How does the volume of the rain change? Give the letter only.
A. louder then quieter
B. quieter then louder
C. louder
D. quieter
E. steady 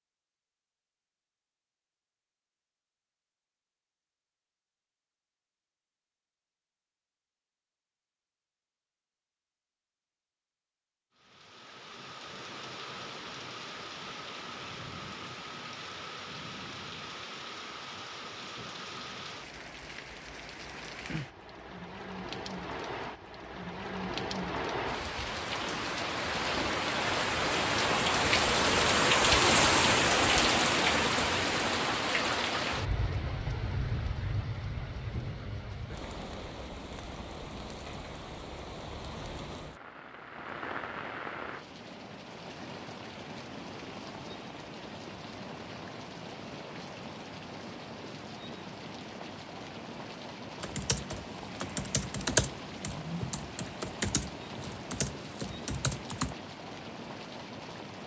A.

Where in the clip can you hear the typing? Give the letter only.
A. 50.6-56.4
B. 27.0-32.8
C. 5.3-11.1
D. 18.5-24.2
A.